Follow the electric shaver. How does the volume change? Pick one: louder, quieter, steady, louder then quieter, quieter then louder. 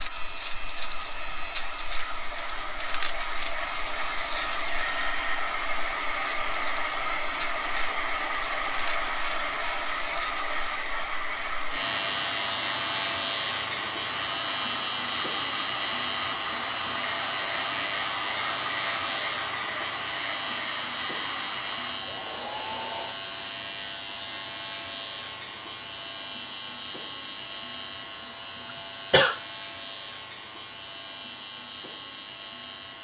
quieter.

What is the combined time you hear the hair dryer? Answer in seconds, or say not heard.
23 s.